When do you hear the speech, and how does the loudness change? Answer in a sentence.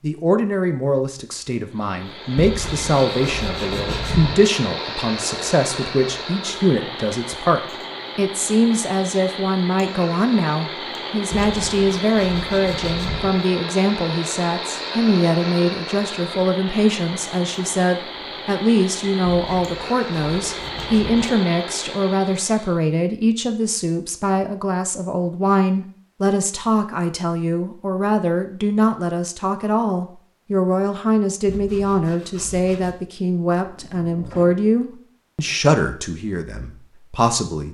The speech can be heard from 0.0 to 37.6 s, at a steady volume.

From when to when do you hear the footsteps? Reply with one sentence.
The footsteps can't be heard in this clip.